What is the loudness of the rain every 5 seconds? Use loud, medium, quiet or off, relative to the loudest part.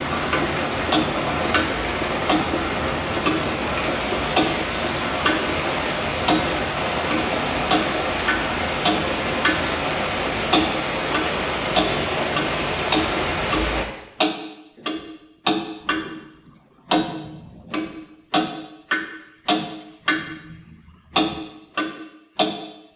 loud, loud, loud, off, off.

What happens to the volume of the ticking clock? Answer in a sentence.
The volume of the ticking clock stays about the same.